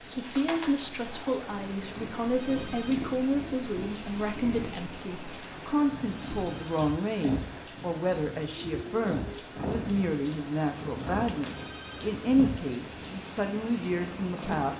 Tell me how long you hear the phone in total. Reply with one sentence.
The phone can be heard for 3 seconds in total.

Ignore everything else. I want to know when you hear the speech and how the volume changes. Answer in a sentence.
The speech can be heard from 0.0 to 14.7 s, at a steady volume.